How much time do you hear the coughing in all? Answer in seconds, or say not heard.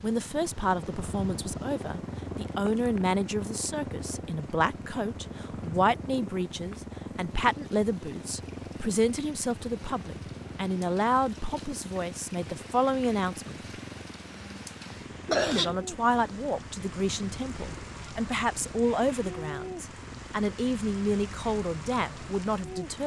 3 s.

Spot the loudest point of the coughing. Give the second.
15 s.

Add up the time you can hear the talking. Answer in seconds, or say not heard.
21 s.